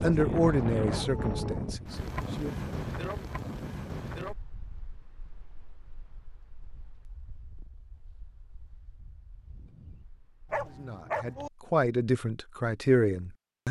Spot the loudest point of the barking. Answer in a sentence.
The loudest moment of the barking is at 11 seconds.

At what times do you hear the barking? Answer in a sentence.
The barking can be heard from 0.8 to 1.6 s and from 10.5 to 11.5 s.